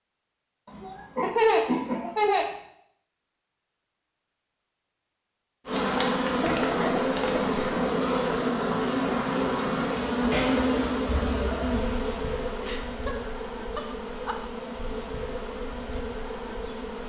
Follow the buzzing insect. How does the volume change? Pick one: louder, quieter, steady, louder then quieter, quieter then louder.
quieter.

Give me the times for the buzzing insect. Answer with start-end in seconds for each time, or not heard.
5.7-17.0.